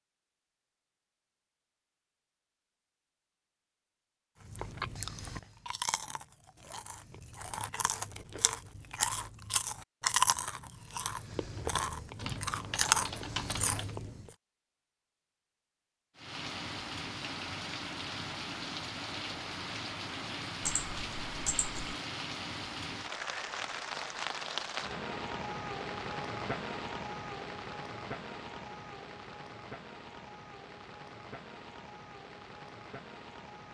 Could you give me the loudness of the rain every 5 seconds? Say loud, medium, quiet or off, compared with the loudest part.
off, off, off, loud, loud, loud, medium.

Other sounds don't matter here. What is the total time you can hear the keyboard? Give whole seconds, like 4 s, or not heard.
3 s.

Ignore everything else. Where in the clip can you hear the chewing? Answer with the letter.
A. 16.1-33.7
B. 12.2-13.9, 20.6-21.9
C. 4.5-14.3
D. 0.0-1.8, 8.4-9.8
C.